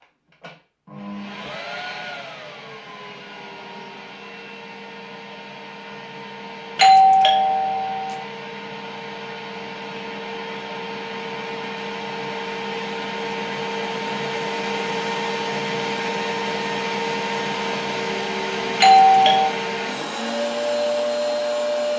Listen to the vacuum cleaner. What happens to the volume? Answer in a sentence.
The volume of the vacuum cleaner goes up.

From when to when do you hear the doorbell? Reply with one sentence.
The doorbell can be heard from 6.8 to 8.2 s and from 18.8 to 19.5 s.